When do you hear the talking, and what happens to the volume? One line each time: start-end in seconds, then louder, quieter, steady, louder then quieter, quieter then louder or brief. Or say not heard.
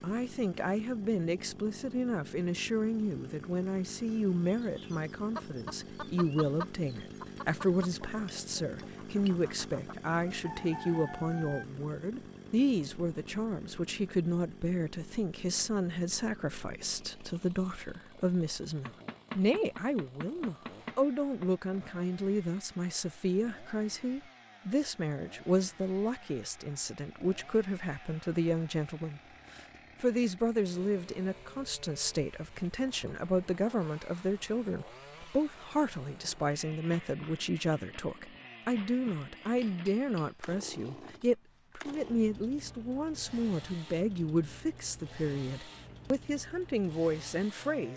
0.0-47.9 steady.